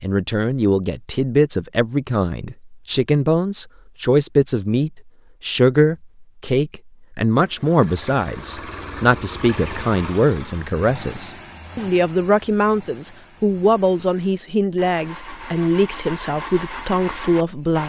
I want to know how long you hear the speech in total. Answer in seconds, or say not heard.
18 s.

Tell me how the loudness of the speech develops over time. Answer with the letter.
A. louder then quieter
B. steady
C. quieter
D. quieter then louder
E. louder
B.